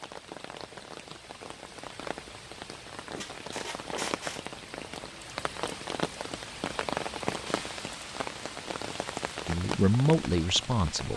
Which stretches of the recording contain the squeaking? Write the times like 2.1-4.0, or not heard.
3.1-4.5.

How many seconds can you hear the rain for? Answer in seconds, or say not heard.
11 s.